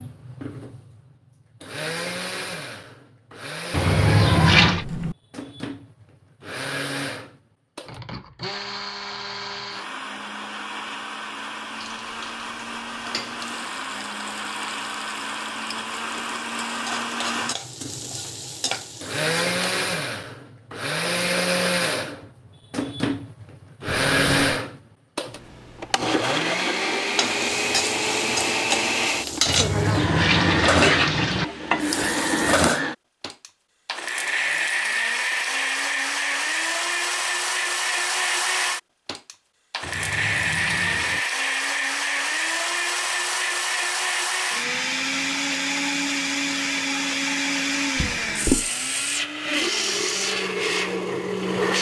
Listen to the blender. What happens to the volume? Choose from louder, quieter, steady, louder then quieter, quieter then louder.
louder.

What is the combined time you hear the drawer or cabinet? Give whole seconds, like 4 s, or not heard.
2 s.